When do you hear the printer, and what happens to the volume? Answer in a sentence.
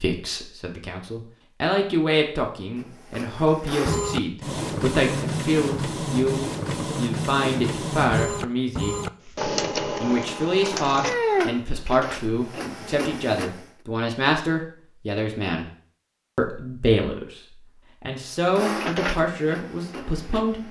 You can hear the printer from 2.8 to 13.7 s, at a steady volume; and briefly from 18.4 to 20.6 s.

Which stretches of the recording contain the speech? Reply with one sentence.
You can hear the speech from 0.0 to 8.9 s, from 10.0 to 15.7 s, from 16.4 to 17.4 s and from 18.0 to 20.6 s.